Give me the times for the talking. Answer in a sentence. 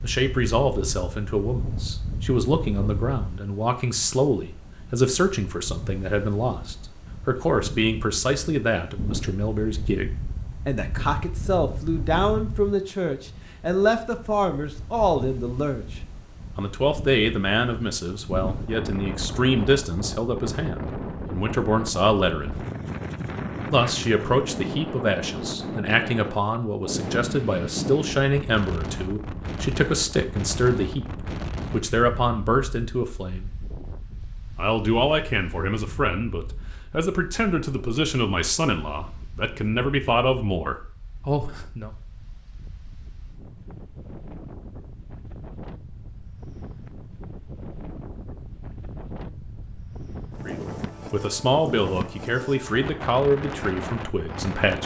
You can hear the talking from 0.0 to 15.8 s, from 16.6 to 22.6 s, from 23.7 to 33.5 s, from 34.5 to 41.9 s and from 50.5 to 54.8 s.